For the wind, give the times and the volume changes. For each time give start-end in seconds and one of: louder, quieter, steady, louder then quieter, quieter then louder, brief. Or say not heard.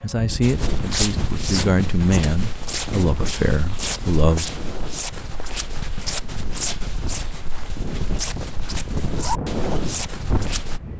0.0-10.9 quieter then louder.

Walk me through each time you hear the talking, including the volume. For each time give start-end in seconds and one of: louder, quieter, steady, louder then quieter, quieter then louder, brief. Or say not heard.
0.0-4.6 steady.